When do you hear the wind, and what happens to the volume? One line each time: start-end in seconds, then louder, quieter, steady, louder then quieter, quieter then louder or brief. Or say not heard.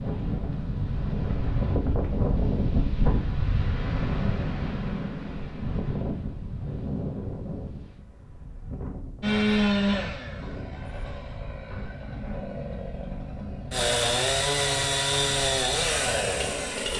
0.0-16.9 quieter.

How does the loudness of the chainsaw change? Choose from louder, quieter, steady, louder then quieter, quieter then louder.
quieter then louder.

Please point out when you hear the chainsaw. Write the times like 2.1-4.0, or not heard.
9.2-16.9.